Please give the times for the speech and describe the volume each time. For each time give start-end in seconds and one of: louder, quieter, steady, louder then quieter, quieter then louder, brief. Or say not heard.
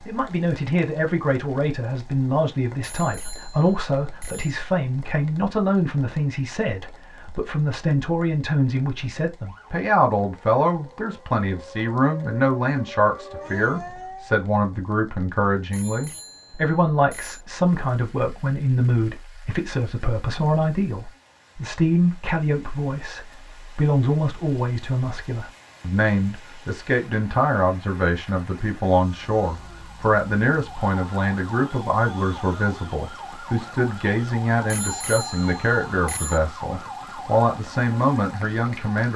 0.1-39.1 steady.